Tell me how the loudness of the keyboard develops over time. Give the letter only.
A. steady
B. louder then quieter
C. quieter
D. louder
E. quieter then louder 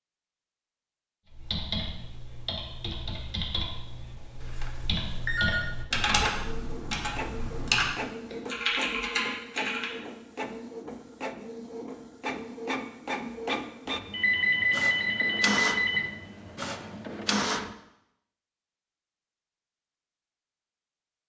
D.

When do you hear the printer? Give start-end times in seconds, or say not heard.
6.0-17.8.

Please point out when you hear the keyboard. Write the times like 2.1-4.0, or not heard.
1.2-9.9.